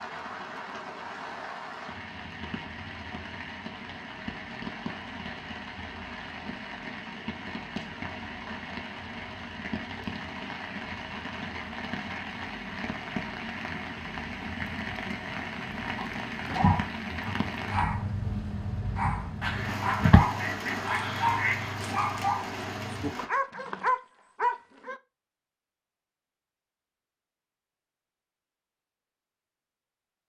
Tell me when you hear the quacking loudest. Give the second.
20 s.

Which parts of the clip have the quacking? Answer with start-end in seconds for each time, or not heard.
19.4-21.8.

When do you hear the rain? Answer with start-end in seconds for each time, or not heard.
0.0-23.3.